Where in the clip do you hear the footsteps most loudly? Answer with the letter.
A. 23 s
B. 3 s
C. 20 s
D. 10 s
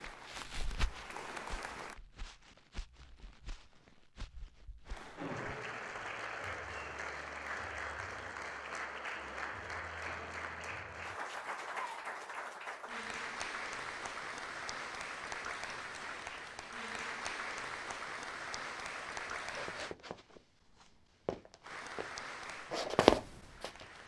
A.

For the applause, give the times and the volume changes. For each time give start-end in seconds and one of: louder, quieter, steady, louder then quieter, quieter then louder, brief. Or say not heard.
0.0-2.0 brief
4.8-19.9 steady
21.6-24.0 brief.